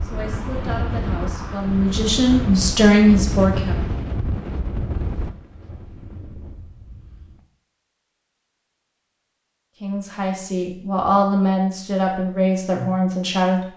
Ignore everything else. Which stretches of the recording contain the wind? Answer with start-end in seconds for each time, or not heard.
0.0-7.5.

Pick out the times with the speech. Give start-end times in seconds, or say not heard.
0.0-3.9, 9.8-13.7.